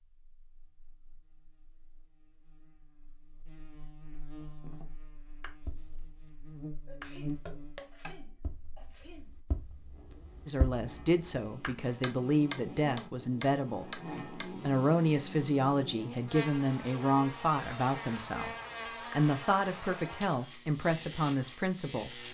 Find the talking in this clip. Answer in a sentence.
The talking can be heard from 10.4 to 18.6 s and from 19.1 to 22.2 s.